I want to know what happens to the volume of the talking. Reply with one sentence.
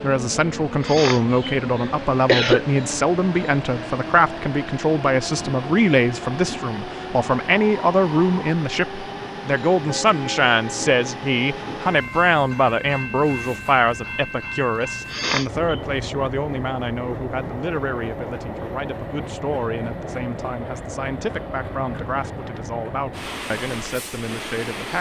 The loudness of the talking goes down.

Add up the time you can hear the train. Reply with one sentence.
You can hear the train for 25 seconds altogether.